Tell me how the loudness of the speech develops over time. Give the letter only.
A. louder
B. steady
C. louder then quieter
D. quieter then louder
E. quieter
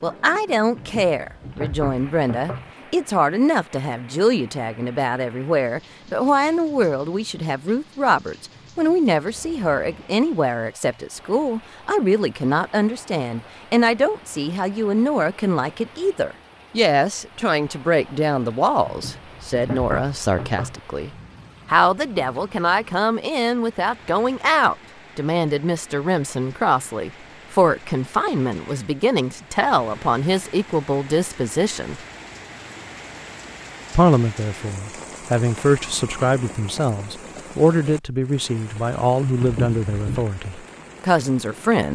B.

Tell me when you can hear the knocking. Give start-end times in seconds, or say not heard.
0.8-2.8, 18.9-20.8, 39.4-40.2.